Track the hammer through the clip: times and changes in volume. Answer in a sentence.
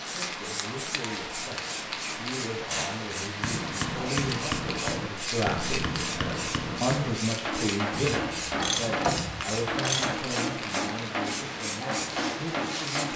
The hammer can be heard from 2.7 to 13.1 s, at a steady volume.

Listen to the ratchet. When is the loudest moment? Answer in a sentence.
The loudest moment of the ratchet is at 9 seconds.